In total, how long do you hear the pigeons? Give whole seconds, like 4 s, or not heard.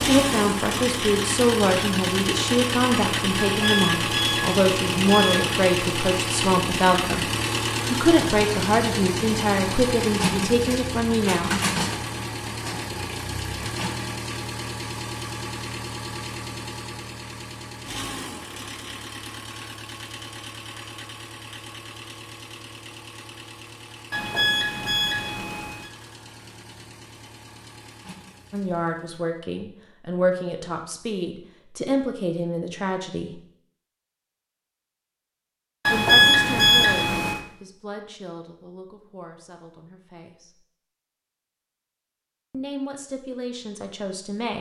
not heard.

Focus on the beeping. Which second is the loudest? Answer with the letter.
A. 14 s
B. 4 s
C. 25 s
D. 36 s
D.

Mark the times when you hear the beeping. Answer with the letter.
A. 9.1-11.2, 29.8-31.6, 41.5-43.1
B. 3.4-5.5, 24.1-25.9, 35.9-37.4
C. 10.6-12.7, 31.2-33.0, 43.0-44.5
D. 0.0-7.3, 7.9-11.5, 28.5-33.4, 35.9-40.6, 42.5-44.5
B.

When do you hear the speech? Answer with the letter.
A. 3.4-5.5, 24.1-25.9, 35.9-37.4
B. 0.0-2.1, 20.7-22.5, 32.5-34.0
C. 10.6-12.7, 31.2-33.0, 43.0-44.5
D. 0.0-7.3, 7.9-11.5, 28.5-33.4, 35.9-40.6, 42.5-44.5
D.